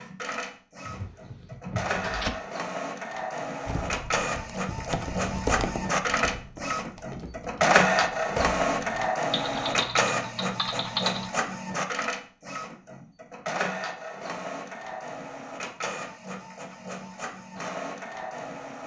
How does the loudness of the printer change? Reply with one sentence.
The loudness of the printer goes up, then down.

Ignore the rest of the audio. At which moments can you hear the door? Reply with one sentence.
The door can be heard from 0.8 to 2.3 s.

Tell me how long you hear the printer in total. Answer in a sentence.
The printer can be heard for 19 seconds in total.